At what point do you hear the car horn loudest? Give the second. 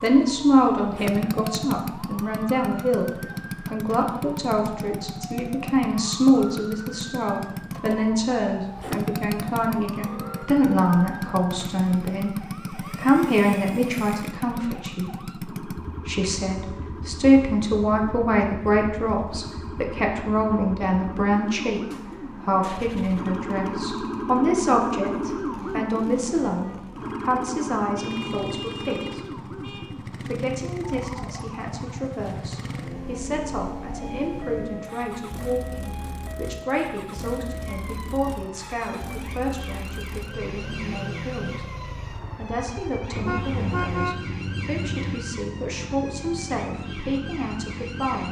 44 s.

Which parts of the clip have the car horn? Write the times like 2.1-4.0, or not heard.
10.0-10.6, 27.9-29.9, 43.1-45.1.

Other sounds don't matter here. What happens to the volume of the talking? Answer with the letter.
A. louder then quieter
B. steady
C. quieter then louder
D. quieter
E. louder
D.